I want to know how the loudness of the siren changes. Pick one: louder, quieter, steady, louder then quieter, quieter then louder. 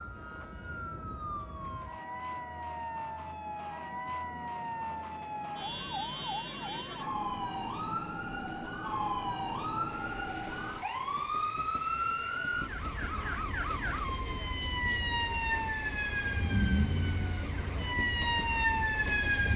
louder.